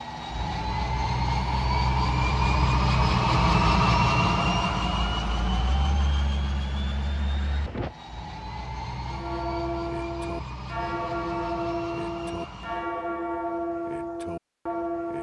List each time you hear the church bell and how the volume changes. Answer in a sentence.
You can hear the church bell from 9.1 to 15.1 s, at a steady volume.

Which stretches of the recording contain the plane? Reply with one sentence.
The plane can be heard from 0.0 to 12.9 s.